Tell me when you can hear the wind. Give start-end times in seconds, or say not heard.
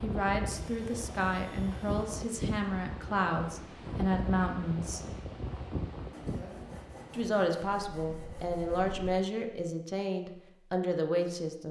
0.0-9.2.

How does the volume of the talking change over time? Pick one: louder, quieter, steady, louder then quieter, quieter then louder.
steady.